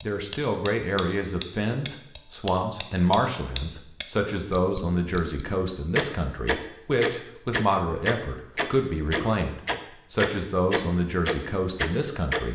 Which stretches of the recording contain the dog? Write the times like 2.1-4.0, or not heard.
not heard.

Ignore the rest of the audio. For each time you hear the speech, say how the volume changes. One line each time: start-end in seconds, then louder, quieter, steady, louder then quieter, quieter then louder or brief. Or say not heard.
0.0-12.5 steady.